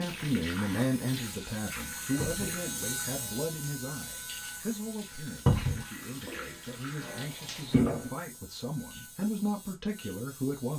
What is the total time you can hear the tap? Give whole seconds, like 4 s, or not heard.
8 s.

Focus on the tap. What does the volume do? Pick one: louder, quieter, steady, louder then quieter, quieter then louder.
quieter then louder.